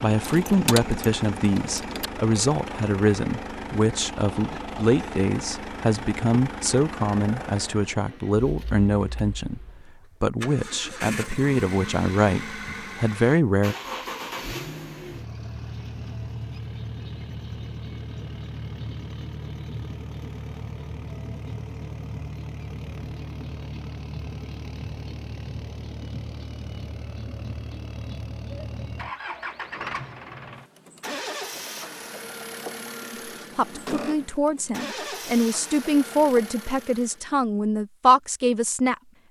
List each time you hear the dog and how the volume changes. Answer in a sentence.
You can't hear the dog here.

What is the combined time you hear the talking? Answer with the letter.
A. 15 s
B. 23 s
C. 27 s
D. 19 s
D.